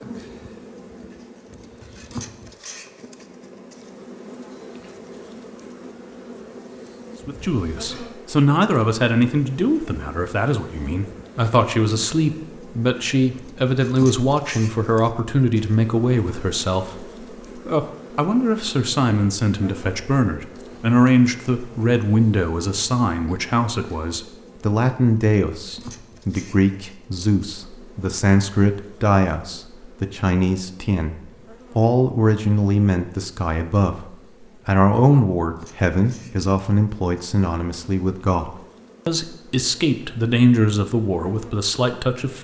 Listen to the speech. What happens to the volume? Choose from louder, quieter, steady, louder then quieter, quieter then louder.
steady.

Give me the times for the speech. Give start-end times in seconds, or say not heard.
7.2-42.4.